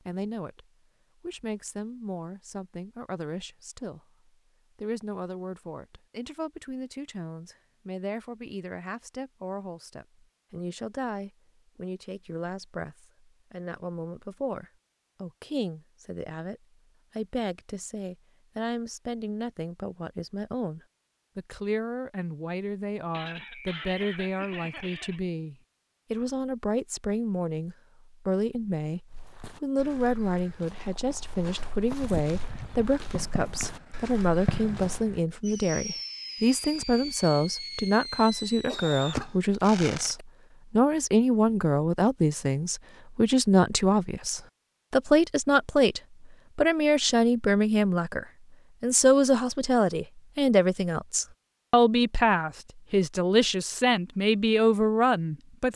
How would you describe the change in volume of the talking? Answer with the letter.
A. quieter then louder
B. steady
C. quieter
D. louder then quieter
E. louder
E.